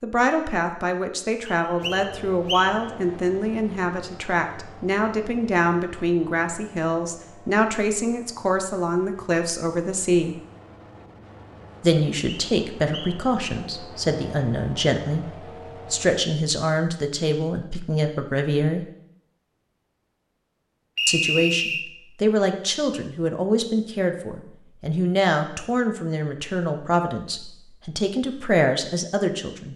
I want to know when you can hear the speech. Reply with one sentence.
The speech can be heard from 0.0 to 10.3 s, from 11.8 to 18.9 s and from 21.1 to 29.7 s.